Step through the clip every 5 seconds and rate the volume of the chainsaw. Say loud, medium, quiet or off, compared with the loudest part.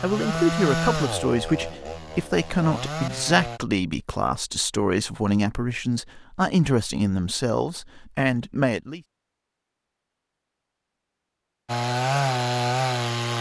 medium, off, loud.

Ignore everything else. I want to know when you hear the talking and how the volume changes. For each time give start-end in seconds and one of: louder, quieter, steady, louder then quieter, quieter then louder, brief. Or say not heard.
0.0-9.0 steady.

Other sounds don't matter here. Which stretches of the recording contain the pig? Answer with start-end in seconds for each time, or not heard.
not heard.